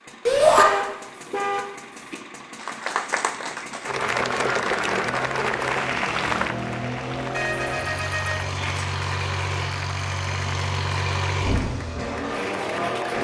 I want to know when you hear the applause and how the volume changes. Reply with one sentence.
You can hear the applause from 2.6 to 13.1 s, getting quieter.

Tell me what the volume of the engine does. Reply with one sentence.
The loudness of the engine goes up.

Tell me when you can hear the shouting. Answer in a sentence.
You can hear the shouting from 0.2 to 0.7 s and from 8.4 to 8.8 s.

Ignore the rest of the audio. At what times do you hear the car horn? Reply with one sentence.
You can hear the car horn from 0.4 to 2.1 s and from 7.3 to 8.7 s.